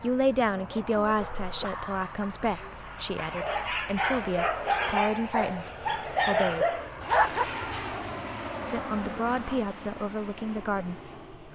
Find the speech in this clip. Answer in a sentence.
The speech can be heard from 0.0 to 6.7 s and from 8.7 to 11.4 s.